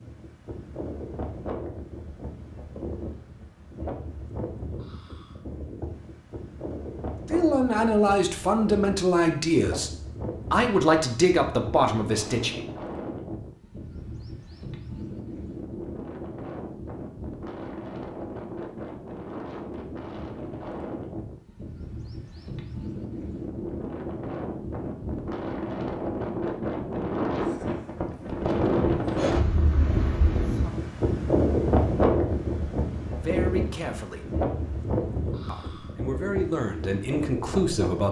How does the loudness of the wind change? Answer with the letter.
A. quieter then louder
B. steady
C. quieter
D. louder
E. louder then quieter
D.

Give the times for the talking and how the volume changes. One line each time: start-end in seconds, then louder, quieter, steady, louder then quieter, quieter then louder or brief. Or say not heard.
7.2-12.6 steady
33.2-34.4 brief
35.5-38.0 brief.